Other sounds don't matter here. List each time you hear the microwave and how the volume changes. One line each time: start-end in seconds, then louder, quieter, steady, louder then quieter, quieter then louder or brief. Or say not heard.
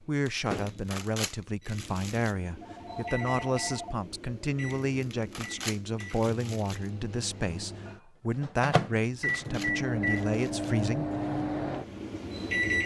0.0-12.8 louder.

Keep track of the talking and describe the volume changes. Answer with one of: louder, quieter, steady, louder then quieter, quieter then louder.
steady.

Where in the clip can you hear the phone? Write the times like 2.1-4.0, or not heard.
2.6-4.0.